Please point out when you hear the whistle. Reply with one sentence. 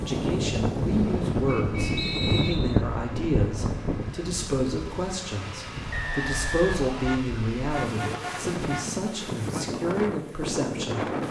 The whistle can be heard from 1.9 to 2.9 s and from 5.9 to 7.2 s.